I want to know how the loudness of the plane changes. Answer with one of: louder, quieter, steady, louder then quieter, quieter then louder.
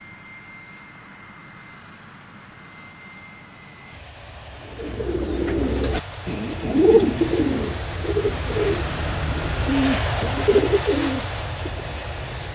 louder.